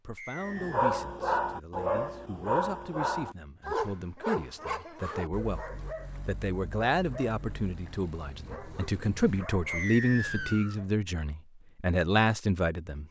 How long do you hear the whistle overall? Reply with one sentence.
You can hear the whistle for 2 seconds altogether.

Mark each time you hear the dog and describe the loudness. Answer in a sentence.
The dog can be heard from 0.5 to 10.9 s, getting quieter.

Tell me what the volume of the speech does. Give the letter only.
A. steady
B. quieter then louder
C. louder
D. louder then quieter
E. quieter
C.